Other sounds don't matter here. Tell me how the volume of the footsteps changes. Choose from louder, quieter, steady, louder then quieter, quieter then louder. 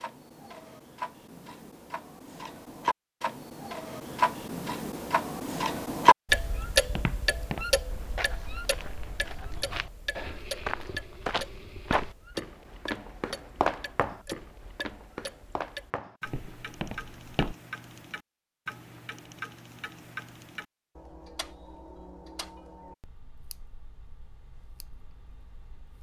louder then quieter.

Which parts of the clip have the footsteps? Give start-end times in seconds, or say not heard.
6.8-17.6.